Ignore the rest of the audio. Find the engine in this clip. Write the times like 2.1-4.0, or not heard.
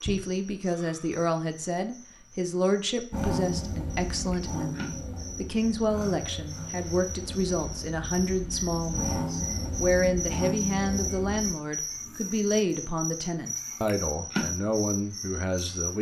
3.1-11.6.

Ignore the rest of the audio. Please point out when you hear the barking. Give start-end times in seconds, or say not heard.
not heard.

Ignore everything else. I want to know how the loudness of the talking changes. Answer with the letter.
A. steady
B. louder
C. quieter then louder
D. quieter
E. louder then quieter
A.